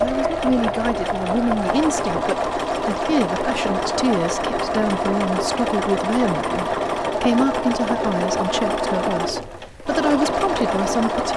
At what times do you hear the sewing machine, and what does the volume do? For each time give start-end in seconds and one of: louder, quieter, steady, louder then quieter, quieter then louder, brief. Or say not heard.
0.0-11.3 steady.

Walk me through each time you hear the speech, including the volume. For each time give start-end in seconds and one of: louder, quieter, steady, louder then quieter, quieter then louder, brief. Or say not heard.
0.0-11.3 steady.